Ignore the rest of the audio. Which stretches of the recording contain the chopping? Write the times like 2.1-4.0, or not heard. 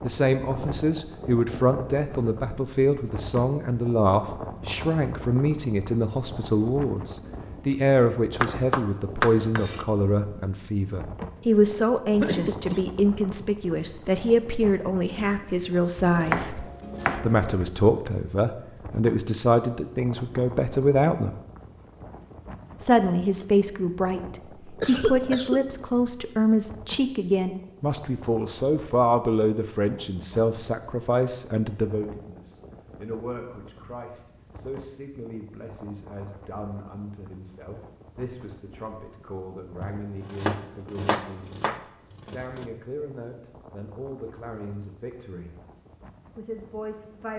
8.4-9.8, 16.1-17.5, 39.8-42.6.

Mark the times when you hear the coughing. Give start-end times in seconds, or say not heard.
12.2-12.8, 24.8-25.6.